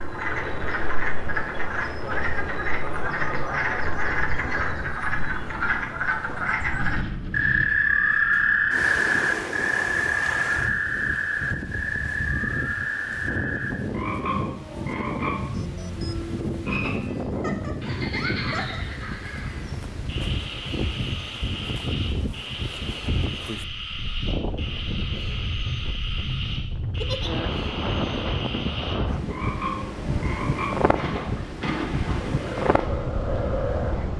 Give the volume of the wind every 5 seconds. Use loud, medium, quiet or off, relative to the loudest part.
medium, medium, loud, loud, loud, loud, loud.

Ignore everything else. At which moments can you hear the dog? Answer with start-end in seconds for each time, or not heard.
not heard.